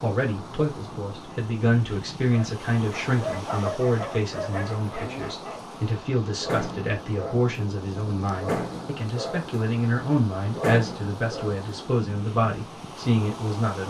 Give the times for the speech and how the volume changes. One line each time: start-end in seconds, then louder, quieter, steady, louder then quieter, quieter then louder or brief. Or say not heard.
0.0-13.8 steady.